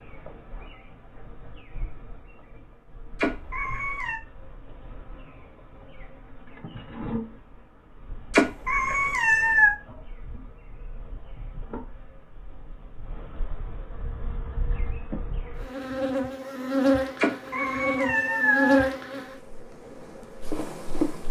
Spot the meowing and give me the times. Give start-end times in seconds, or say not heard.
3.1-4.2, 8.3-9.8, 17.1-18.9.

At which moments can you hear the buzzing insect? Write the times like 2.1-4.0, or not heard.
0.0-21.2.